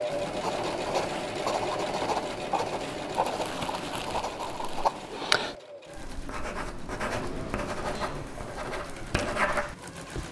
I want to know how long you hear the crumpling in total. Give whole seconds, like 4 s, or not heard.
2 s.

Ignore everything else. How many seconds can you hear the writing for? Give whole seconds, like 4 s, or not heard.
10 s.